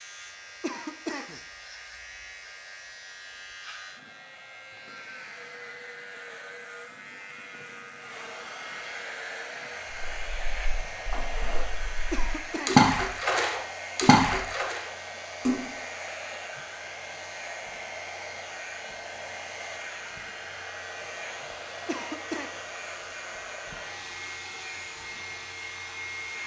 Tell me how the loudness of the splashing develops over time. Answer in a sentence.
The volume of the splashing goes up, then down.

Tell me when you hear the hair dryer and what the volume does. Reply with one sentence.
The hair dryer can be heard from 0.0 to 26.4 s, getting louder.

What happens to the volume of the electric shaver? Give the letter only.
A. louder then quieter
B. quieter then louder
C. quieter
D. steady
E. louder
D.